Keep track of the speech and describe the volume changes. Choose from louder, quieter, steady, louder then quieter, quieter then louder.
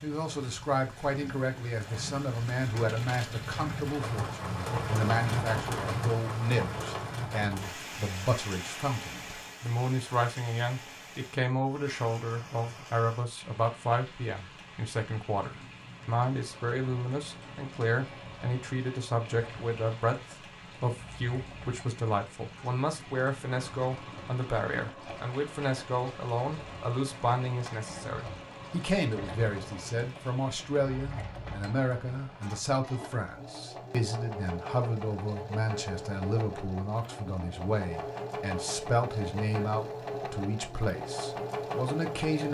steady.